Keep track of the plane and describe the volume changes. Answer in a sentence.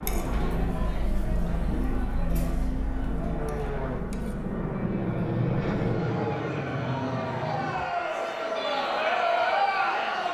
The volume of the plane goes up, then down.